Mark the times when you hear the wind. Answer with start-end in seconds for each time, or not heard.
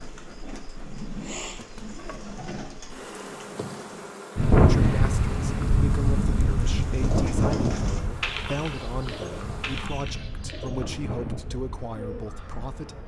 4.3-13.0.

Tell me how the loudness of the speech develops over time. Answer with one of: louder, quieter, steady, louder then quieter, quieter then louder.
steady.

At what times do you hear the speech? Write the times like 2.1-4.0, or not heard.
4.5-13.0.